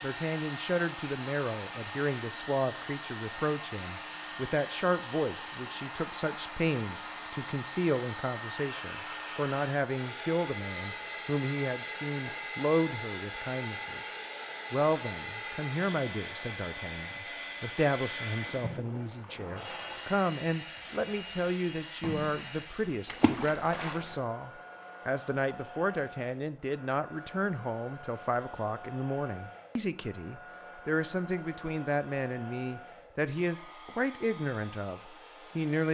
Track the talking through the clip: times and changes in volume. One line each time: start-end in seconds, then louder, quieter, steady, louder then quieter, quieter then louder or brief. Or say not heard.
0.0-35.9 steady.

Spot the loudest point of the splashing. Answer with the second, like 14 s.
23 s.